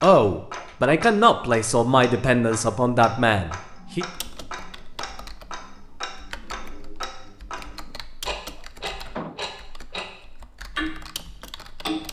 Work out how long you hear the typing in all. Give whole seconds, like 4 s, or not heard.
8 s.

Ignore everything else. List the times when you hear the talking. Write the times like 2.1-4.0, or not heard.
0.0-4.0.